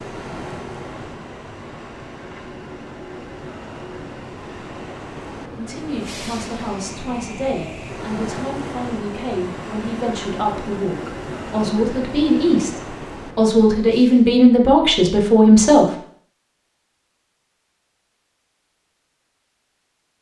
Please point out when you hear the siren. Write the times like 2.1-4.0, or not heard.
not heard.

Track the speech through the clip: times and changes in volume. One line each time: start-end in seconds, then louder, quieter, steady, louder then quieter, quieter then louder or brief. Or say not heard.
5.5-15.8 louder.